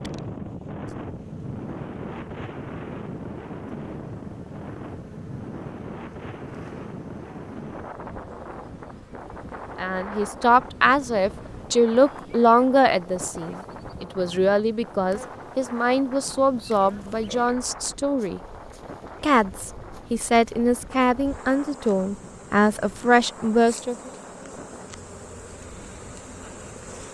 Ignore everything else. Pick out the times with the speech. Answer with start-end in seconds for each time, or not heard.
9.8-18.4, 19.2-24.1.